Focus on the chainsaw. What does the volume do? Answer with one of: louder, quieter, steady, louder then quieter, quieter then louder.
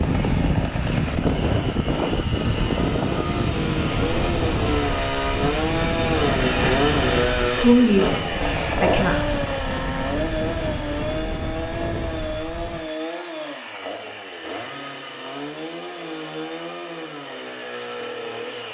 louder then quieter.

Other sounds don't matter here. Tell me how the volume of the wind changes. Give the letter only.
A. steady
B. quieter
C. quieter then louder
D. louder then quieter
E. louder
B.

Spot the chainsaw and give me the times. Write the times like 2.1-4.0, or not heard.
0.0-18.7.